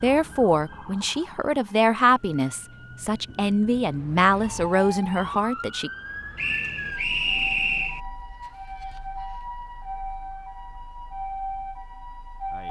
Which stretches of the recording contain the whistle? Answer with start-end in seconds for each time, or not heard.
6.3-8.0.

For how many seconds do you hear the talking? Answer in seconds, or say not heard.
6 s.